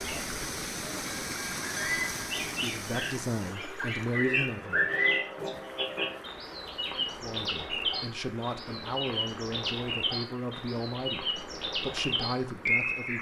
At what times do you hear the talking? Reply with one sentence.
The talking can be heard from 2.5 to 4.8 s and from 7.0 to 13.1 s.